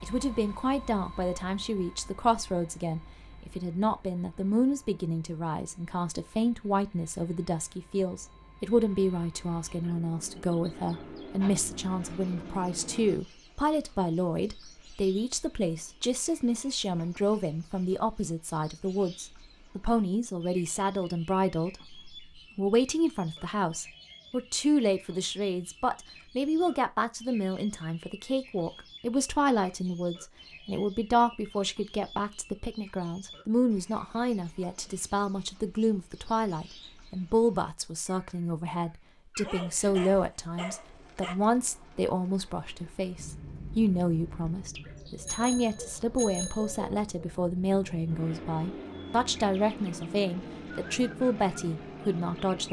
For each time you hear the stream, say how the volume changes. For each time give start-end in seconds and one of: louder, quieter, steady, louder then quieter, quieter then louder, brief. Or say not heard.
not heard.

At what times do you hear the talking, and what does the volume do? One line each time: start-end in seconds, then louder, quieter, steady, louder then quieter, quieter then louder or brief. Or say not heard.
0.0-52.6 steady.